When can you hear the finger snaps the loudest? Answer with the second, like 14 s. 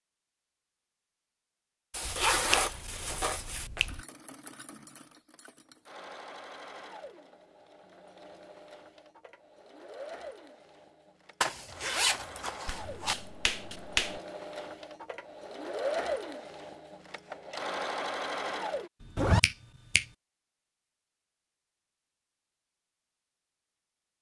14 s.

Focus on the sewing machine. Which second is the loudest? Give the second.
16 s.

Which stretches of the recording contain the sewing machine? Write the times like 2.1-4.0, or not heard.
3.9-18.9.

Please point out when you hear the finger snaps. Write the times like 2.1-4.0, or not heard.
2.0-4.0, 12.7-14.2, 19.0-20.1.